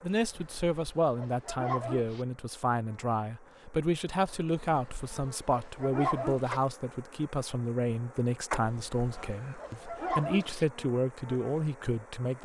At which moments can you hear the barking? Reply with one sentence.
You can hear the barking from 0.2 to 2.2 s, from 4.5 to 6.6 s and from 8.7 to 10.7 s.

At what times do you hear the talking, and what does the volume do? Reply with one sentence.
The talking can be heard from 0.0 to 12.3 s, at a steady volume.